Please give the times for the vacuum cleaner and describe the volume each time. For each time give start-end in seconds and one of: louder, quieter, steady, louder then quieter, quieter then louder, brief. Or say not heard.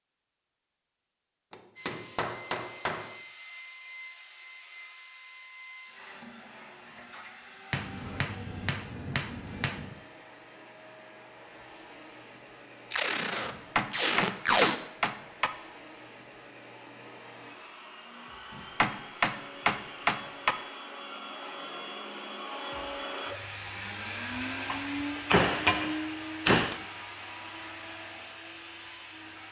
1.8-29.4 louder.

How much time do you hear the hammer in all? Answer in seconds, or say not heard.
10 s.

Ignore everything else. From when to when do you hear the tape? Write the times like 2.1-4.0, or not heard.
12.9-14.8.